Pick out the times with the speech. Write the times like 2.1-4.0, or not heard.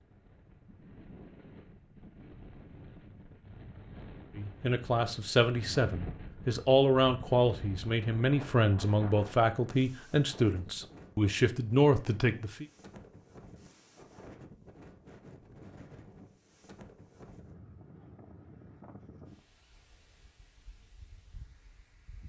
4.3-12.7.